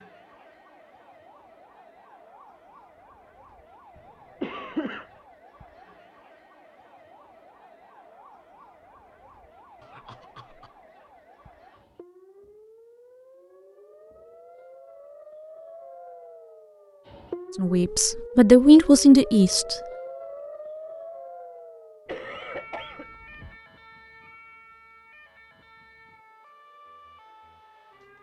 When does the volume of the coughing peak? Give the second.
5 s.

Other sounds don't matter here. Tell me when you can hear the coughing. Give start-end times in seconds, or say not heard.
4.0-5.0, 9.8-10.7, 22.1-23.6.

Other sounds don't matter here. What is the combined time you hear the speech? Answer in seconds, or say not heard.
2 s.